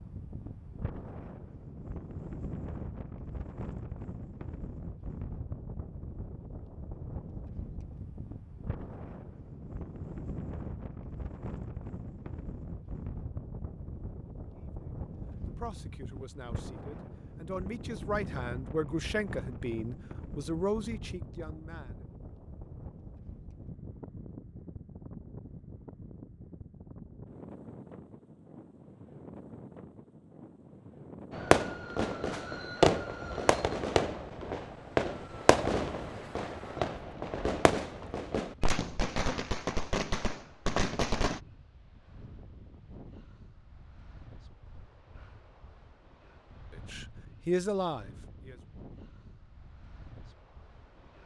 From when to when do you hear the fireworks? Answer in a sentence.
The fireworks can be heard from 31.3 to 41.4 s.